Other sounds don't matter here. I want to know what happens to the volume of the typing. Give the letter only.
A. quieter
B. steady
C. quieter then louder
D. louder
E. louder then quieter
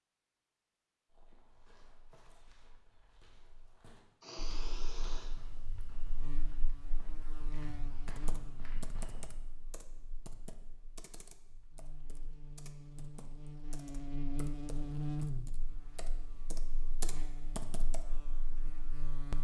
C.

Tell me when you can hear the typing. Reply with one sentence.
You can hear the typing from 8.1 to 18.1 s.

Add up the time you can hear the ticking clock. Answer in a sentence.
You can't hear the ticking clock here.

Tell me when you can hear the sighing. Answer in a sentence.
The sighing can be heard from 4.2 to 5.3 s.